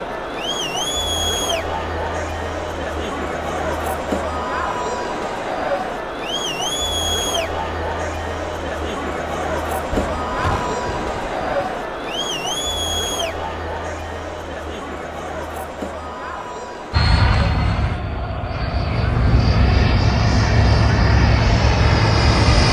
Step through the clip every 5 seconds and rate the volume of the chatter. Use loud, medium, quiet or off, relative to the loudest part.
loud, loud, loud, medium, loud.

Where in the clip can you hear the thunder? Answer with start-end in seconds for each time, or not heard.
9.9-11.7.